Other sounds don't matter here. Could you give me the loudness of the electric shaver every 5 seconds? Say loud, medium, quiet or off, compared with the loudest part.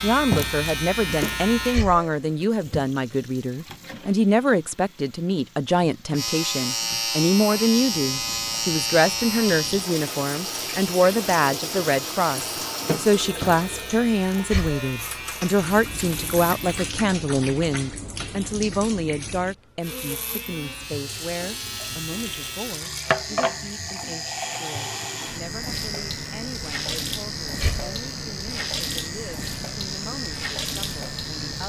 loud, loud, medium, medium, medium, medium, medium.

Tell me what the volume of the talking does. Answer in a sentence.
The loudness of the talking goes down.